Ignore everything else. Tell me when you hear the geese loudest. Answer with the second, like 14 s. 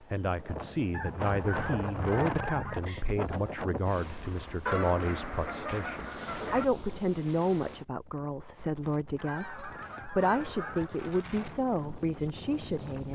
5 s.